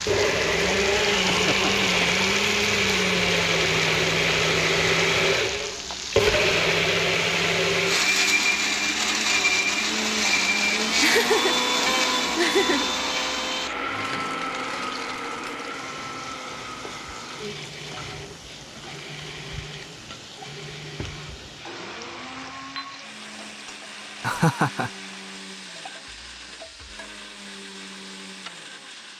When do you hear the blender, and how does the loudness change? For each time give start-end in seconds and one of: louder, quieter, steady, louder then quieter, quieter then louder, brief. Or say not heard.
0.0-29.1 quieter.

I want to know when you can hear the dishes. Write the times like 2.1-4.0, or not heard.
not heard.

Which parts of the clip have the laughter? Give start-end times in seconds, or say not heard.
1.2-2.2, 11.0-12.9, 24.2-24.9.